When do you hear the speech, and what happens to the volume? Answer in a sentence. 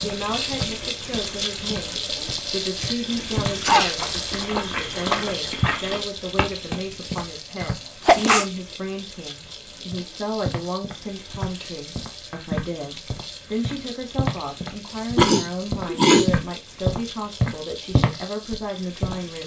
You can hear the speech from 0.0 to 19.4 s, at a steady volume.